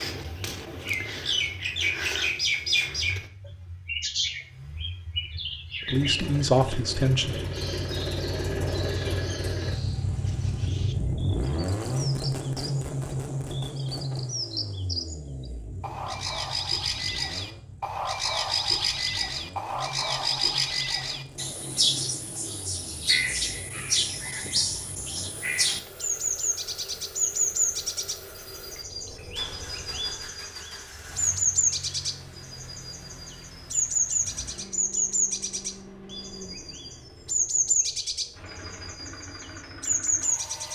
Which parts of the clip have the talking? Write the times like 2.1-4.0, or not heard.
5.8-7.3.